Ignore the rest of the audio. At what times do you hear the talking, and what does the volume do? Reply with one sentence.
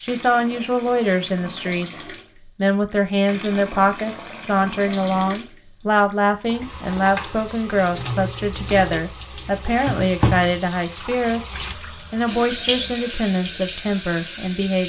The talking can be heard from 0.0 to 14.8 s, at a steady volume.